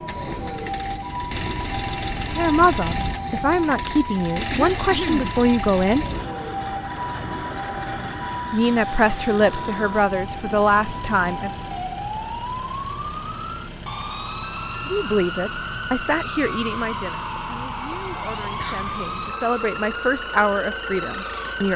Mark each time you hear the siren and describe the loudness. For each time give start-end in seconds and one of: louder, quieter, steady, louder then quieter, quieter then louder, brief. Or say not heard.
0.0-21.7 steady.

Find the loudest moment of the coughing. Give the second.
5 s.